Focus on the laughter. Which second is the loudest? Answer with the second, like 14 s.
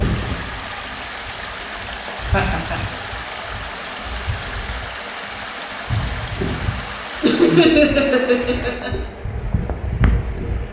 8 s.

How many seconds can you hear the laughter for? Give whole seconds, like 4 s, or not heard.
2 s.